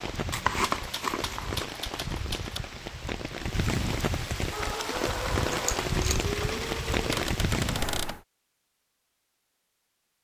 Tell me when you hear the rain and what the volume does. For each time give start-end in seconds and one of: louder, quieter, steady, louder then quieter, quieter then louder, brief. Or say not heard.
0.0-8.2 louder.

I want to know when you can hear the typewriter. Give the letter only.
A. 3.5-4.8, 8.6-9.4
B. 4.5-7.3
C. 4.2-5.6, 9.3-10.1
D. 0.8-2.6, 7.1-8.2
D.